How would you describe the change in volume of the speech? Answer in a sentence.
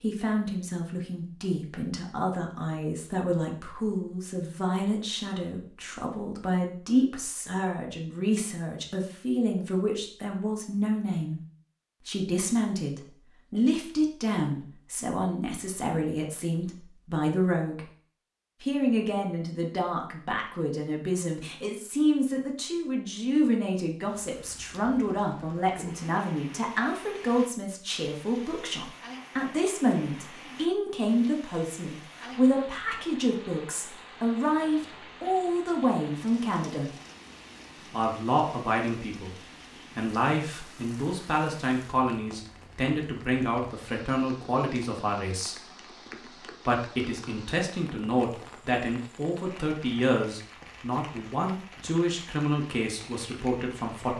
The volume of the speech stays about the same.